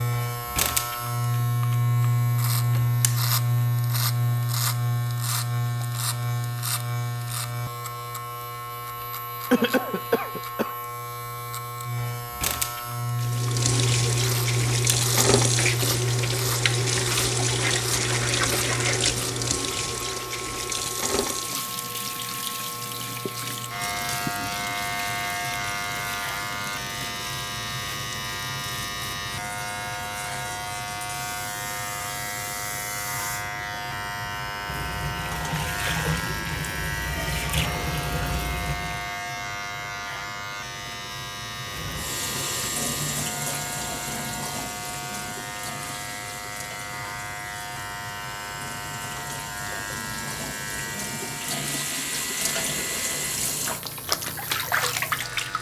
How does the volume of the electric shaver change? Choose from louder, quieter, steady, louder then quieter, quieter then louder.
quieter.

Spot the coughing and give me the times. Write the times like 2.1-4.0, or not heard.
9.5-10.8.